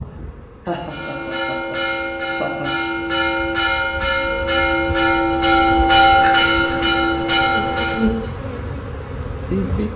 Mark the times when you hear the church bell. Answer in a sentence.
You can hear the church bell from 0.8 to 8.3 s.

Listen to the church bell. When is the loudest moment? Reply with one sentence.
The loudest moment of the church bell is at 6 seconds.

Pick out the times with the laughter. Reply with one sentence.
You can hear the laughter from 0.7 to 2.9 s.